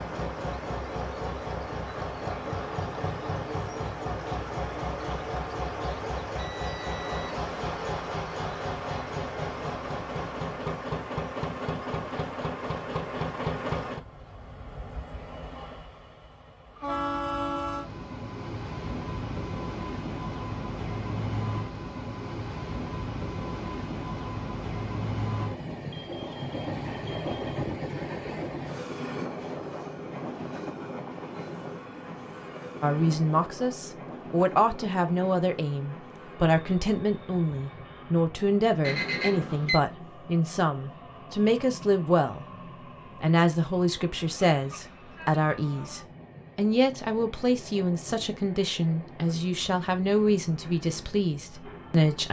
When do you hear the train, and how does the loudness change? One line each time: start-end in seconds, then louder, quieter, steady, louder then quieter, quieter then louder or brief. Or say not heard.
0.0-52.2 quieter.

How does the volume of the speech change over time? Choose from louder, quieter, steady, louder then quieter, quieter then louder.
steady.